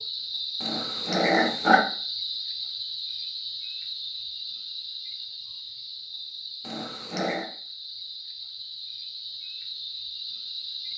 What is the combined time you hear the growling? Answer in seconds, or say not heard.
2 s.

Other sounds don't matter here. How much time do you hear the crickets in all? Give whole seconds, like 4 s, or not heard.
11 s.